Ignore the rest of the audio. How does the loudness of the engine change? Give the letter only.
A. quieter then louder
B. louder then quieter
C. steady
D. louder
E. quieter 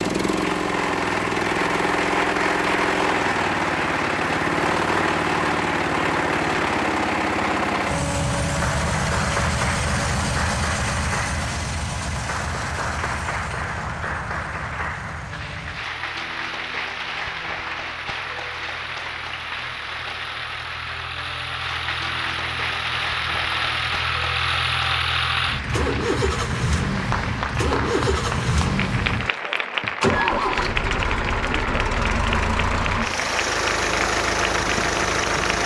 A.